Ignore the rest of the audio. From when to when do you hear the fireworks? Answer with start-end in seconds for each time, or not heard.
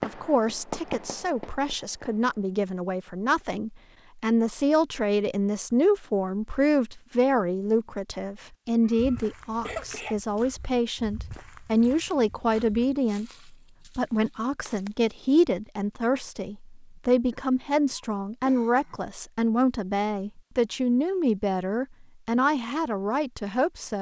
0.0-2.5.